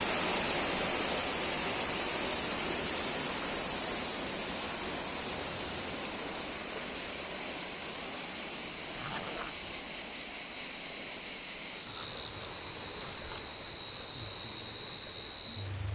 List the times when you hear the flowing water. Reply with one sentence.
The flowing water can be heard from 0.0 to 15.9 s.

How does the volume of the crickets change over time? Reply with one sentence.
The volume of the crickets goes up.